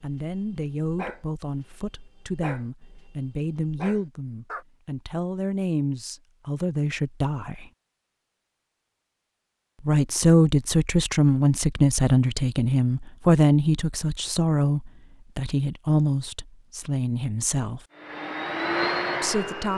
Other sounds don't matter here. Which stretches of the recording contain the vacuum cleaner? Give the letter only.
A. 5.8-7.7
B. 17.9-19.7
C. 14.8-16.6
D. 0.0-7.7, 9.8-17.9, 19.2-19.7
B.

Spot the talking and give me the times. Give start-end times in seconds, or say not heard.
0.0-7.7, 9.8-17.9, 19.2-19.7.